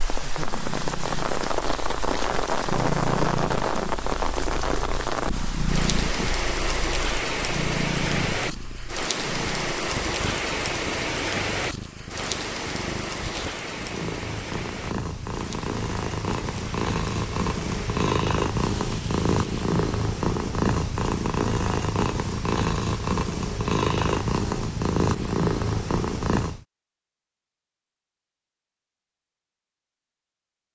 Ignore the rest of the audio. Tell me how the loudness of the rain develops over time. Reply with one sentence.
The volume of the rain goes down.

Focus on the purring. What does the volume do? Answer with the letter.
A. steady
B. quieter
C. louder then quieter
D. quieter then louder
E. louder
E.